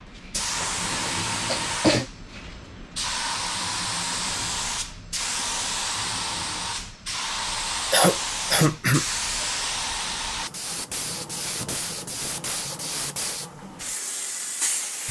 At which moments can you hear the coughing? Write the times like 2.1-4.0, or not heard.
0.3-2.0, 7.9-9.1.